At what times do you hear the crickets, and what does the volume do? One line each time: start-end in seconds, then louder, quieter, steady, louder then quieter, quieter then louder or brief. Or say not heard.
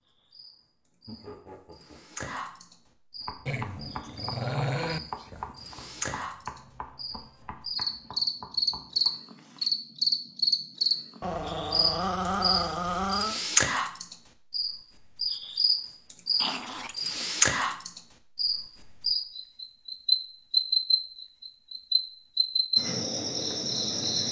0.1-24.2 louder.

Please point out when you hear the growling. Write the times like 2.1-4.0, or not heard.
3.5-5.0, 11.2-13.4, 16.4-17.8.